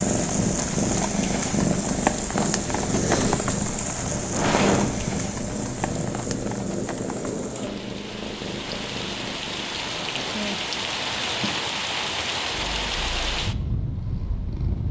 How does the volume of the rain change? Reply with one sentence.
The loudness of the rain goes down, then up.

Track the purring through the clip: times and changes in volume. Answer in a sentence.
The purring can be heard from 0.0 to 14.8 s, getting quieter.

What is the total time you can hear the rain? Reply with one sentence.
You can hear the rain for 15 seconds altogether.